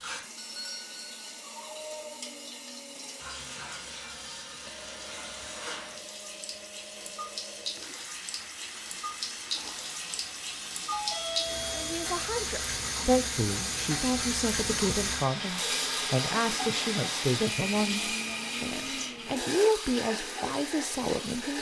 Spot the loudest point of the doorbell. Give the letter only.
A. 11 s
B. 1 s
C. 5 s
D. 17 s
A.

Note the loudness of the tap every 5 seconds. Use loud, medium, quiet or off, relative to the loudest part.
medium, medium, loud, loud, medium.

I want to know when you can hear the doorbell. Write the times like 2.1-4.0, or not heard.
0.3-1.4, 10.9-12.1.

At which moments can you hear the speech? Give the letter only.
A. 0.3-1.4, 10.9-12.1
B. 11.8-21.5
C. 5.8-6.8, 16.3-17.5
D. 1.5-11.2
B.